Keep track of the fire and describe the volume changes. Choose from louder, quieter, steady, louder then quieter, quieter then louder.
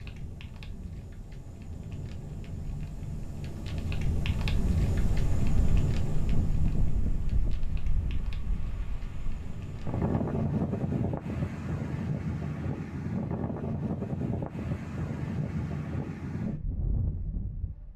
louder then quieter.